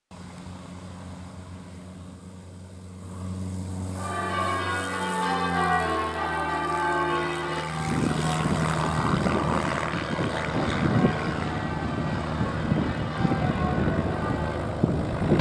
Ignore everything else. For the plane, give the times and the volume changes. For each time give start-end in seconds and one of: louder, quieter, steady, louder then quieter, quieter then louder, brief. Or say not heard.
0.1-15.3 louder.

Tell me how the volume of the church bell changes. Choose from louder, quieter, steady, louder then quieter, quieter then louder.
quieter.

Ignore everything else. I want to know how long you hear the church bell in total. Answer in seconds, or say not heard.
11 s.